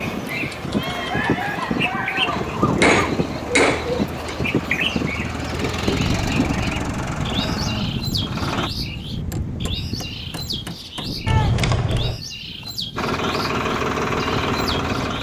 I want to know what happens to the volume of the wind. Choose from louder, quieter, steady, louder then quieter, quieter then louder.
quieter.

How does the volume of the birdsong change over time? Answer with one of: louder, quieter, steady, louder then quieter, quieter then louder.
quieter.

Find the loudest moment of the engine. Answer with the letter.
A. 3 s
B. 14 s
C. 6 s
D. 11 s
B.